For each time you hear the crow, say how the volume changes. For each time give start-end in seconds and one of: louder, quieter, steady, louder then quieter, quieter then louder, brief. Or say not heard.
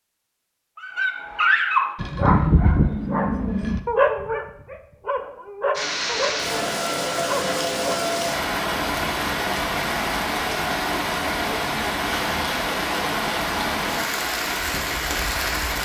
not heard.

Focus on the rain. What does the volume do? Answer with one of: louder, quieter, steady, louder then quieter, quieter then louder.
steady.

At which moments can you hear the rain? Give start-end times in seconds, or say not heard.
5.7-15.8.